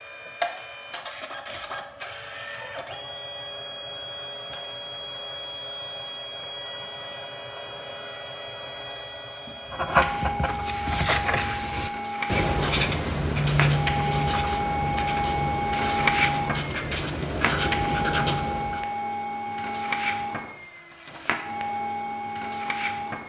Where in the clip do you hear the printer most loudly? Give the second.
16 s.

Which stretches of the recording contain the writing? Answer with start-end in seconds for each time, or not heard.
9.7-18.9.